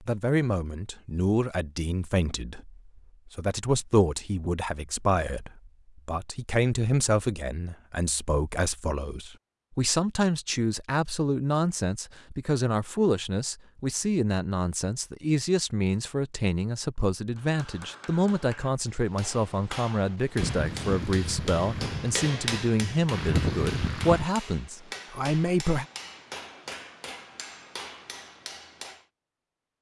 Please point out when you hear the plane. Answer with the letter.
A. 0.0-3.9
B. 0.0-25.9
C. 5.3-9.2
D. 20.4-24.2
D.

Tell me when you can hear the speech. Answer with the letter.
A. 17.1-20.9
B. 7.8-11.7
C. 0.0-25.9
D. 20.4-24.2
C.